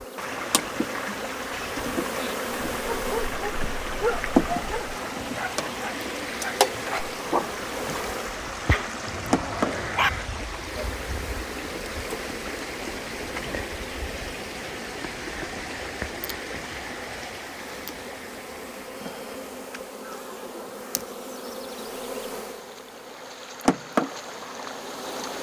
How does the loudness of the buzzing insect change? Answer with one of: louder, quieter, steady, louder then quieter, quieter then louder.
quieter then louder.